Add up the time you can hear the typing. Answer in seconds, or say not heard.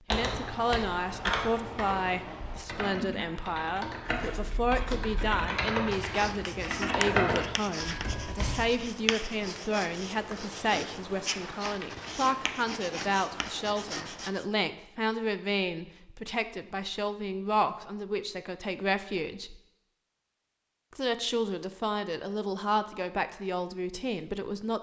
9 s.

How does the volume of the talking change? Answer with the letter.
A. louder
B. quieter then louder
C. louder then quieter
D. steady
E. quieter
D.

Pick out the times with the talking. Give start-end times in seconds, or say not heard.
0.1-19.6, 20.9-24.7.